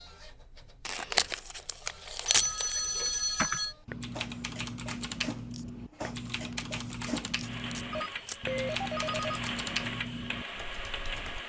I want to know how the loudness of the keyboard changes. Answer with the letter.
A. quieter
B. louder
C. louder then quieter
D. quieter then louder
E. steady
E.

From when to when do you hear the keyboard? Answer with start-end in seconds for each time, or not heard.
3.4-11.4.